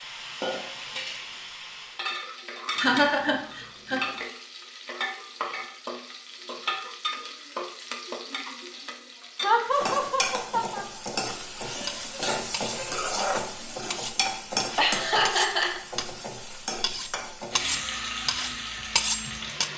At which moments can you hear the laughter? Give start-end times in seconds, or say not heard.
2.8-4.2, 9.4-10.8, 14.8-15.8.